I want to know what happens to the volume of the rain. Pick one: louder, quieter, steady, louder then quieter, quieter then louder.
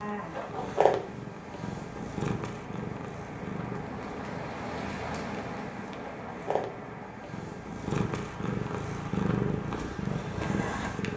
louder then quieter.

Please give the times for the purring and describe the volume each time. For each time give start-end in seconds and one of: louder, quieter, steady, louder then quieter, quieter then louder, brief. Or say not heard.
0.0-11.1 quieter then louder.